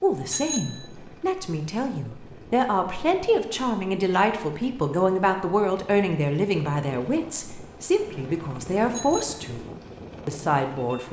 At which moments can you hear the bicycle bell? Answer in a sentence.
The bicycle bell can be heard from 0.2 to 0.9 s and from 8.9 to 9.3 s.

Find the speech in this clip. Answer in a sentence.
You can hear the speech from 0.0 to 9.7 s and from 10.2 to 11.0 s.